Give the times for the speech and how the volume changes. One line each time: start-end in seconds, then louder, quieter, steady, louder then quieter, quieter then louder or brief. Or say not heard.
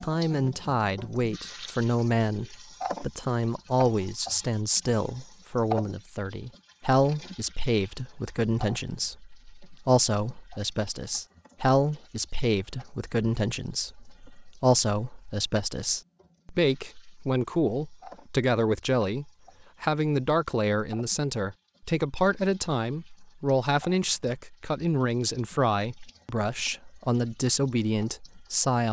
0.0-28.8 steady.